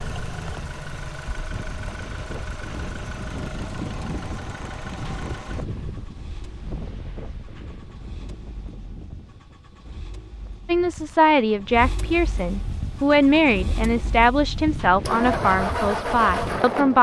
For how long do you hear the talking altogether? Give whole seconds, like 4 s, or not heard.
6 s.